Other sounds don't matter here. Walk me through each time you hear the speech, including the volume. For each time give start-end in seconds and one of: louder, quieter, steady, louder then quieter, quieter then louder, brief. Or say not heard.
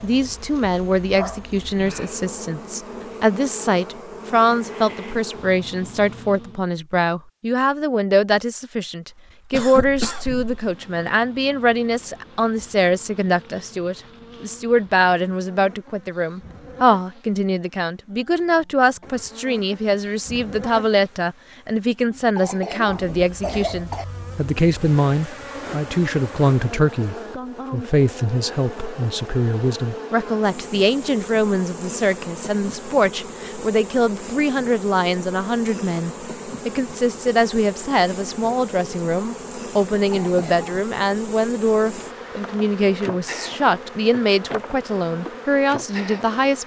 0.0-46.6 steady.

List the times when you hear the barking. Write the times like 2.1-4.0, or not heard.
not heard.